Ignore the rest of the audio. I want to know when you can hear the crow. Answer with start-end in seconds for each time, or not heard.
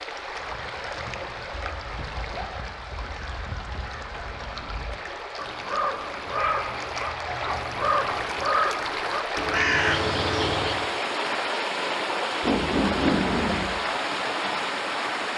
0.3-10.9.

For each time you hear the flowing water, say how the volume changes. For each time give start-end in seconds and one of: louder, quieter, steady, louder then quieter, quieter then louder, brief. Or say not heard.
0.0-15.3 louder.